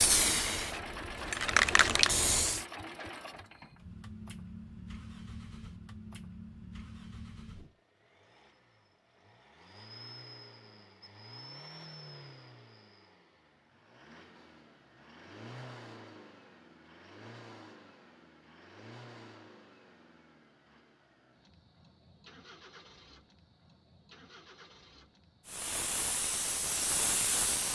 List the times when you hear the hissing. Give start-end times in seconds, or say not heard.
0.0-2.6, 25.4-27.7.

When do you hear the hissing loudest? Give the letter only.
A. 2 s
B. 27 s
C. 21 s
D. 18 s
A.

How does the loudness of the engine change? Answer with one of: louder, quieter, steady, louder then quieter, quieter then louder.
quieter.